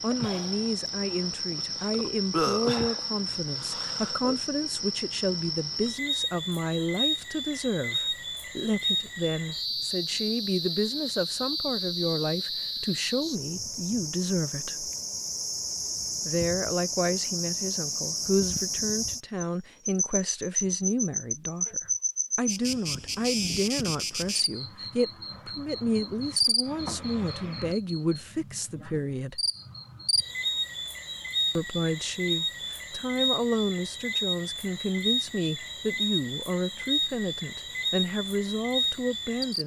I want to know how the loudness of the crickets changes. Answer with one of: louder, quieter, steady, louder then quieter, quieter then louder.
steady.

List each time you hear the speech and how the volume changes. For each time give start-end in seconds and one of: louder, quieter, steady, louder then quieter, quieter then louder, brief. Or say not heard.
0.0-14.9 steady
16.2-29.4 steady
31.6-39.6 steady.